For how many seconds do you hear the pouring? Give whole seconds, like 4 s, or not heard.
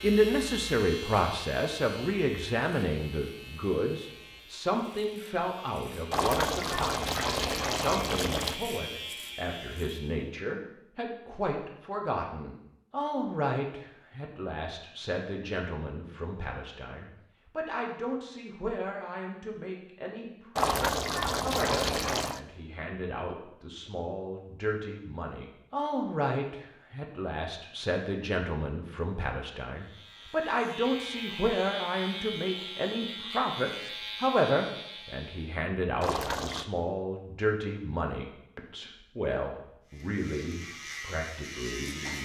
5 s.